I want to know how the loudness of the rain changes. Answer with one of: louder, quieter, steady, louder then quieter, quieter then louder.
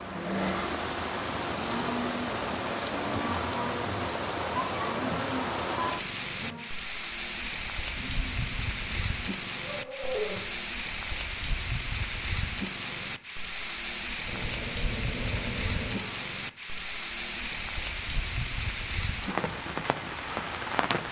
steady.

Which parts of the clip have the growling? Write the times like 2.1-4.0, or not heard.
0.0-0.8, 8.0-10.7, 14.2-16.2.